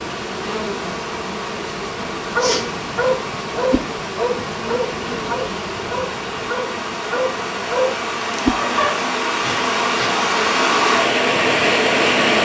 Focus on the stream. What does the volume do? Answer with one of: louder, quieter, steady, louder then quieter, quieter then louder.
louder.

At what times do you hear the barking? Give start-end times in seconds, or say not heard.
2.3-9.1.